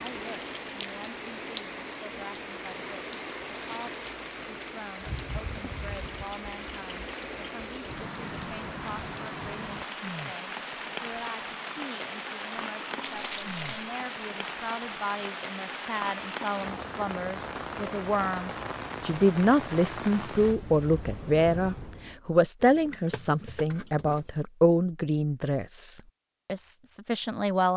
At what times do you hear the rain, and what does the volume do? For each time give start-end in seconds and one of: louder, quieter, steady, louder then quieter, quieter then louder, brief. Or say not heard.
0.0-22.2 steady.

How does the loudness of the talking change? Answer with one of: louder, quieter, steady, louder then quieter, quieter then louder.
louder.